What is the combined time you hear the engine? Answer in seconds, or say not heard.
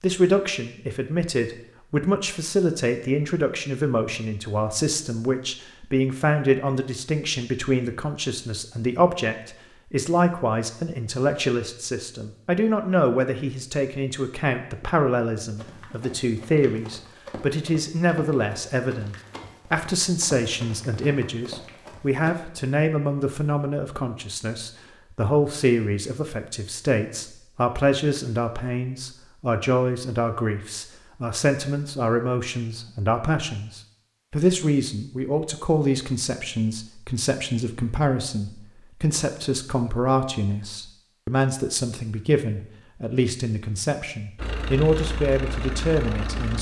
2 s.